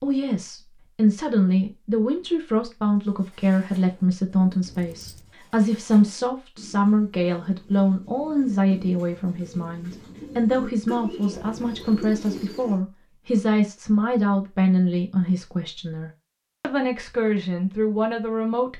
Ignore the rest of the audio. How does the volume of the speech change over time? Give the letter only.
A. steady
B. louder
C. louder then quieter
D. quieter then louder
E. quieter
A.